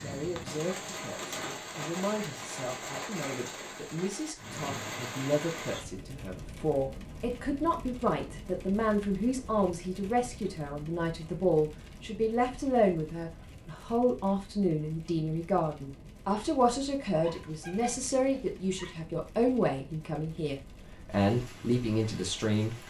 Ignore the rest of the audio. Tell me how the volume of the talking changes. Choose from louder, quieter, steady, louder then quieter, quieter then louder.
louder.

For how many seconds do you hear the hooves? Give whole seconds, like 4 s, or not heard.
not heard.